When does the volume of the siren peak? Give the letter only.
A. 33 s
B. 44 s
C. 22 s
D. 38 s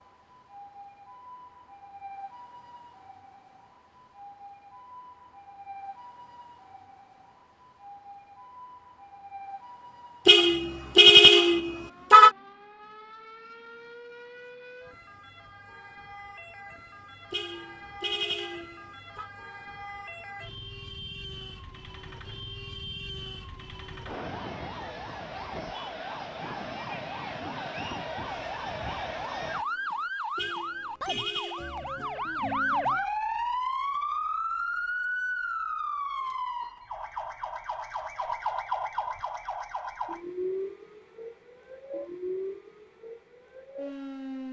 A.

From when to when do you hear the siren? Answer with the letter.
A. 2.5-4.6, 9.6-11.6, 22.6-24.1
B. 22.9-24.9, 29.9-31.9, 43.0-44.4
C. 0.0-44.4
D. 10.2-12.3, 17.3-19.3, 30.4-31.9
C.